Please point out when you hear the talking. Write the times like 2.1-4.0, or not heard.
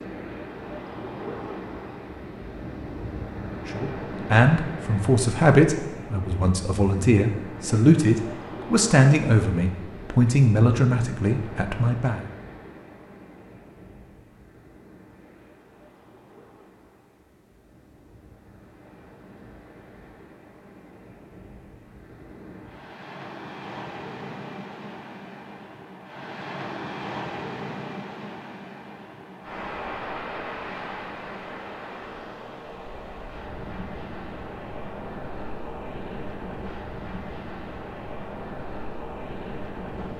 3.6-12.2.